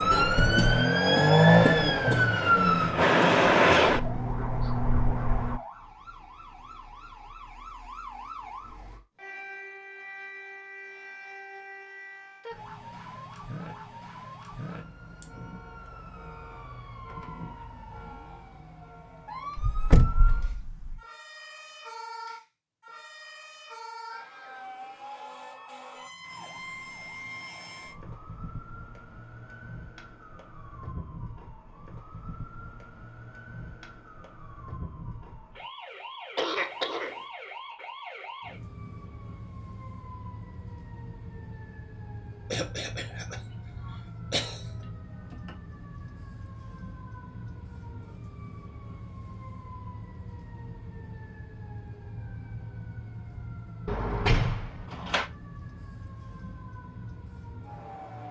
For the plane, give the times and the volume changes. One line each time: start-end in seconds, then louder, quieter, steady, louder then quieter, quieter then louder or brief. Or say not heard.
0.0-5.6 louder then quieter.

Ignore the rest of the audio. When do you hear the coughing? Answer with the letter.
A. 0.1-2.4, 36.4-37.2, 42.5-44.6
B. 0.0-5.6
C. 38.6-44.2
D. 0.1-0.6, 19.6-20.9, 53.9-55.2
A.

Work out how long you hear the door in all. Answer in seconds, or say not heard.
3 s.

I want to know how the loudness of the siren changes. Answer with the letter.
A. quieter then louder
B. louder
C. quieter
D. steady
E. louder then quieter
C.